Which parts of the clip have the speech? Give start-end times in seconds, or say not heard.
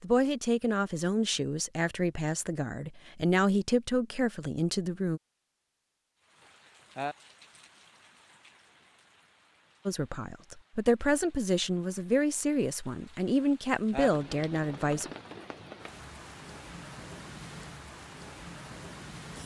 0.0-5.2, 9.8-15.1.